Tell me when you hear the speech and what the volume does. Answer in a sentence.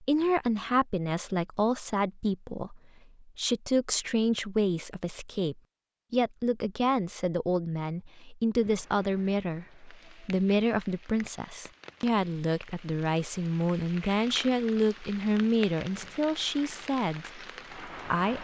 You can hear the speech from 0.0 to 18.3 s, at a steady volume.